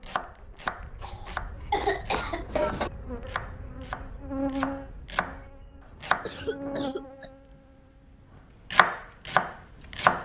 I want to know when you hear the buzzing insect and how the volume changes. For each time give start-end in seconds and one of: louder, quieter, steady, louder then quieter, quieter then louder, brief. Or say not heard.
0.0-0.8 brief
1.6-8.4 louder then quieter.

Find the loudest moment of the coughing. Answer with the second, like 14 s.
2 s.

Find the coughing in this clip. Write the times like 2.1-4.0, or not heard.
1.0-2.9, 6.2-7.3.